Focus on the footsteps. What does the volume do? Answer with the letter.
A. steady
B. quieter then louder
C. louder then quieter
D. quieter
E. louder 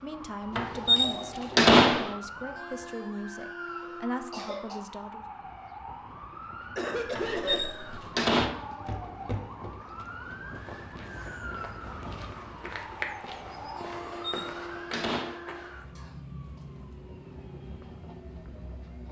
B.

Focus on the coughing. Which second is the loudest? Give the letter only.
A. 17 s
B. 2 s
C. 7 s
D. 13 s
C.